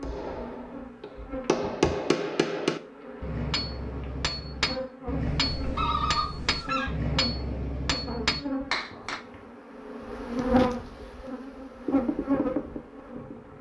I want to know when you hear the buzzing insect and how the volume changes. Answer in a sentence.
You can hear the buzzing insect from 0.0 to 13.5 s, getting louder.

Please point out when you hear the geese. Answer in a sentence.
The geese can be heard from 5.2 to 6.9 s.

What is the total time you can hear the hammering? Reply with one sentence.
The hammering can be heard for 9 seconds in total.